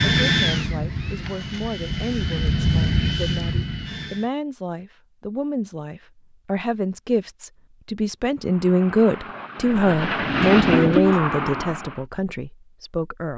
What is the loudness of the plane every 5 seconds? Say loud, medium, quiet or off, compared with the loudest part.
loud, quiet, loud.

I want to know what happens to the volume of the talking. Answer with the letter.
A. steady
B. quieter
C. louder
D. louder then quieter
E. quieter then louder
C.